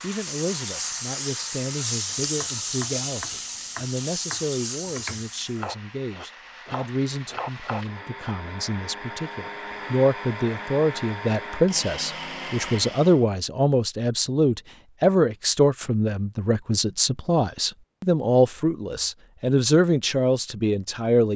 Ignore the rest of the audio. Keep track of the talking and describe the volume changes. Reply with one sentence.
The volume of the talking goes up.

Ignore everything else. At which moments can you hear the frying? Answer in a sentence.
You can hear the frying from 0.0 to 5.7 s.